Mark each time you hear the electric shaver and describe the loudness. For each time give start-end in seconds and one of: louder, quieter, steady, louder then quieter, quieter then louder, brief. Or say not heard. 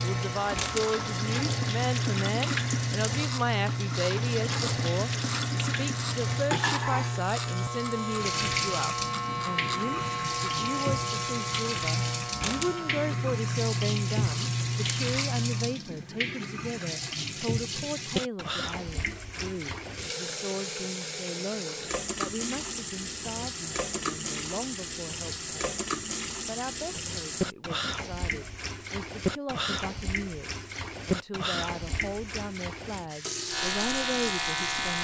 0.0-15.8 steady
33.5-34.9 brief.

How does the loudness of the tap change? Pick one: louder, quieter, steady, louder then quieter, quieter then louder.
steady.